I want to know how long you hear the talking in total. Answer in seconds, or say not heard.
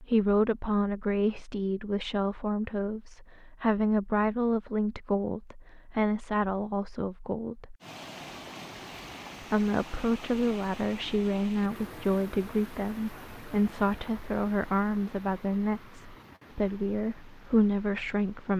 17 s.